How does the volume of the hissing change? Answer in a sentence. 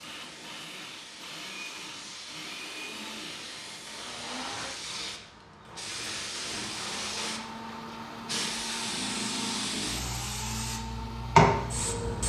The volume of the hissing goes up.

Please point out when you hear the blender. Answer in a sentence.
The blender can be heard from 0.0 to 12.2 s.